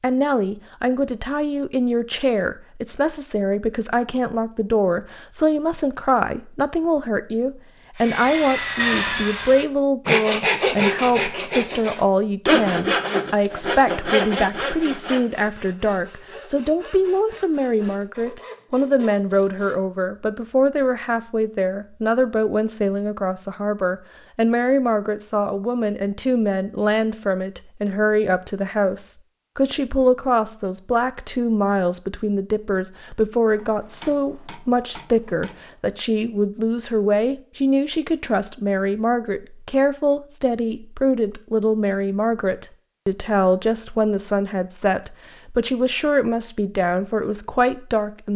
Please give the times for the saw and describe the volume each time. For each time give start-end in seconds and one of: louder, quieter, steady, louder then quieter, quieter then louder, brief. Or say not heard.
8.0-19.8 quieter.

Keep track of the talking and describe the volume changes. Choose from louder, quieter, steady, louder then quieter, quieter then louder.
steady.